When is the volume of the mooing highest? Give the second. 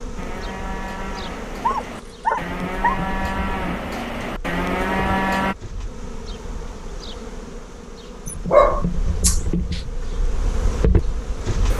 5 s.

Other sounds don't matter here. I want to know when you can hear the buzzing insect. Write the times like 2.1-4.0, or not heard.
0.0-11.7.